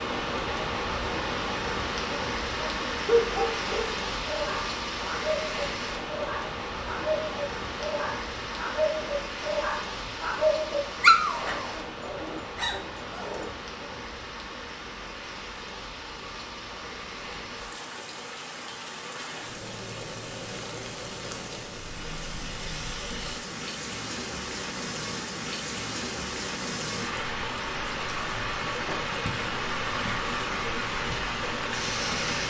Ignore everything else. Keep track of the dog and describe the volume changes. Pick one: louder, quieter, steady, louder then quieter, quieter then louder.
louder then quieter.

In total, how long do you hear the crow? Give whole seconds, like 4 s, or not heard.
not heard.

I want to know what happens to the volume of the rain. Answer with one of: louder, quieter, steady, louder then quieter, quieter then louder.
quieter then louder.